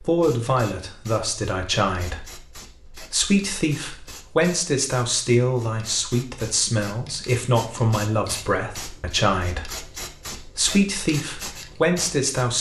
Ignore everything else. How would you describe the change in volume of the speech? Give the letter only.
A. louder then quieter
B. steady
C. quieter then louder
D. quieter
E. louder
B.